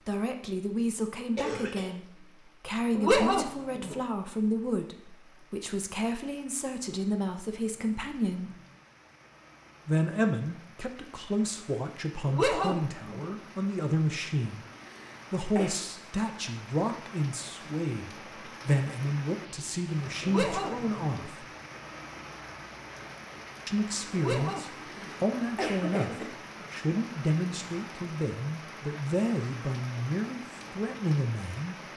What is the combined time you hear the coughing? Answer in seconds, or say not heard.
3 s.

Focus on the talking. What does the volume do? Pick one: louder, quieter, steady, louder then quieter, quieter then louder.
steady.